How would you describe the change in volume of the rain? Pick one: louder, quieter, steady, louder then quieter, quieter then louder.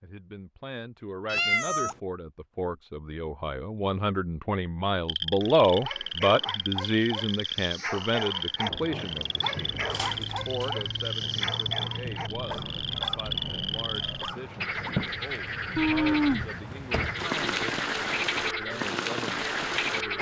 louder.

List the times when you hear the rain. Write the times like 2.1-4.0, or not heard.
8.7-20.1.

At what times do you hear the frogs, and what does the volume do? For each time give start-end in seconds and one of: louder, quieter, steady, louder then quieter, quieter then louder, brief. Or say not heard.
5.0-20.1 steady.